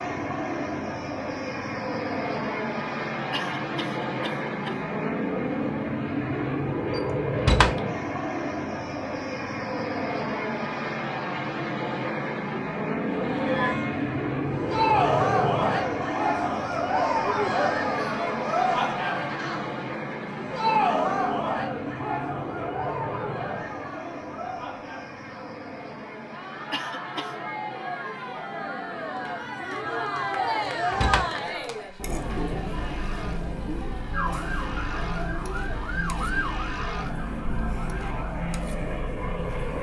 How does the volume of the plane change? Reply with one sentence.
The volume of the plane goes down.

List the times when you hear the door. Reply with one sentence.
You can hear the door from 7.0 to 7.8 s and from 30.9 to 31.4 s.